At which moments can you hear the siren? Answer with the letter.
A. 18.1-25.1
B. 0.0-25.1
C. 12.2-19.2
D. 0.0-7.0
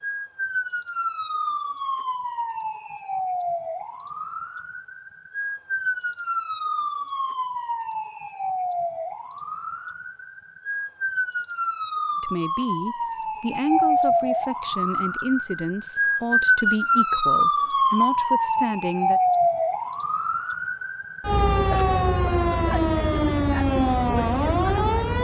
B.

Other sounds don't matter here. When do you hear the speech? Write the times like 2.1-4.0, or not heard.
12.2-19.2.